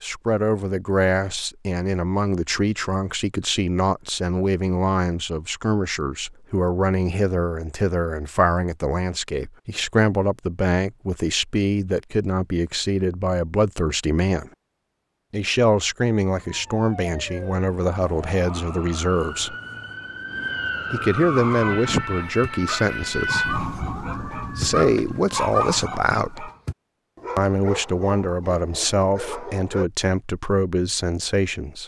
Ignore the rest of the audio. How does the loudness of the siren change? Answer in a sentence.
The loudness of the siren goes up, then down.